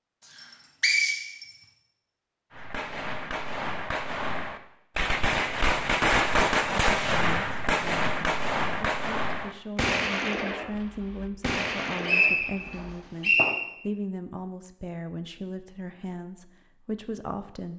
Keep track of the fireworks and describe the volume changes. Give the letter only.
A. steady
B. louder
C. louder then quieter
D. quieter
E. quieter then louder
C.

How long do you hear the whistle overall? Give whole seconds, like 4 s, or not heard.
2 s.